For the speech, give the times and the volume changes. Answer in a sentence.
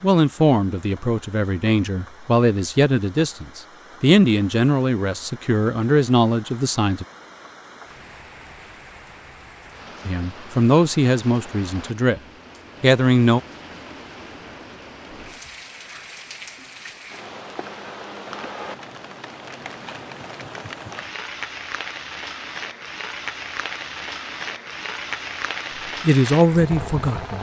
The speech can be heard from 0.0 to 7.0 s, at a steady volume; briefly from 10.1 to 12.2 s; briefly from 12.8 to 13.4 s; and briefly from 26.0 to 27.3 s.